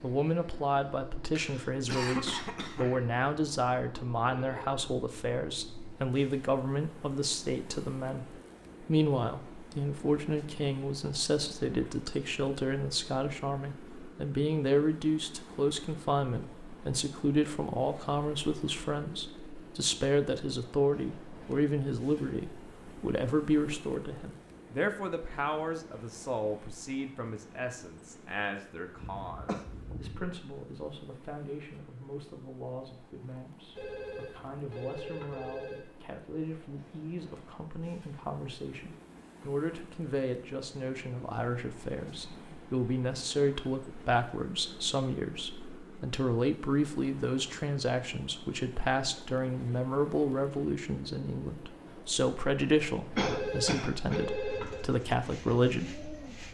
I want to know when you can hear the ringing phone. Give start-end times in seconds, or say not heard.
4.2-4.8, 33.7-35.9, 53.1-54.9.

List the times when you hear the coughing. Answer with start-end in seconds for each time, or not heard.
1.4-3.0, 29.0-30.4, 53.1-54.2.